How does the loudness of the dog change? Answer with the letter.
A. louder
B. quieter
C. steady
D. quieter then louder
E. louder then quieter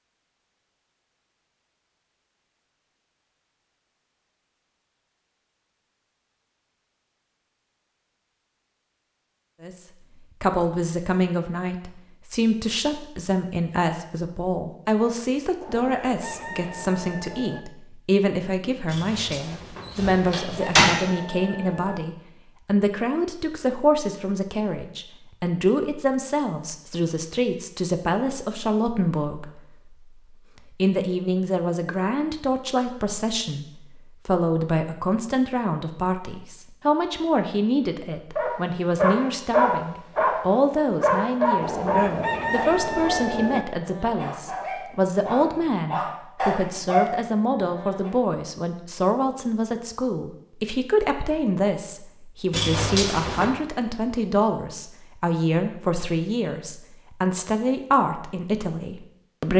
D.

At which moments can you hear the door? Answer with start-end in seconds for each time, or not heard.
18.9-20.9, 52.5-53.5.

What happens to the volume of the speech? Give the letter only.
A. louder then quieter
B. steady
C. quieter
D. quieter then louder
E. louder
B.